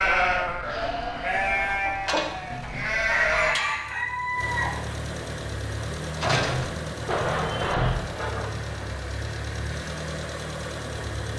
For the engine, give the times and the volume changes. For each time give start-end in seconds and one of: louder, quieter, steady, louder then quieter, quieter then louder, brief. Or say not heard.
1.8-11.3 louder.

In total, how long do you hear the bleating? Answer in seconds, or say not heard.
5 s.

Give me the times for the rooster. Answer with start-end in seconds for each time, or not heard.
1.7-5.0.